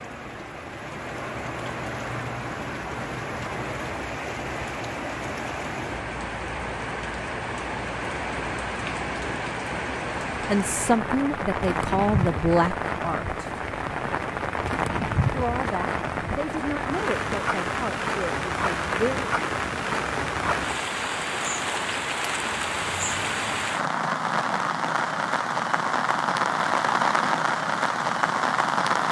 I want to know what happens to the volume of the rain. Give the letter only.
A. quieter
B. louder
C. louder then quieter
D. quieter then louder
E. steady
B.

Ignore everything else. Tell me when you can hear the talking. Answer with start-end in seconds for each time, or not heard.
10.4-13.4, 15.3-19.3.